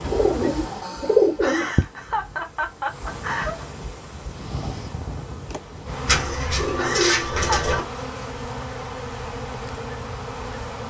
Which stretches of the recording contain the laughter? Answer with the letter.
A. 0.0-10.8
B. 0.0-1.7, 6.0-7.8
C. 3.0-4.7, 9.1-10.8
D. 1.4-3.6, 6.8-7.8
D.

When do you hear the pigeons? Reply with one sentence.
You can hear the pigeons from 0.0 to 1.7 s and from 6.0 to 7.8 s.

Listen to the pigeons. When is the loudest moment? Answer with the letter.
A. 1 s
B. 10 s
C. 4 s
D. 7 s
A.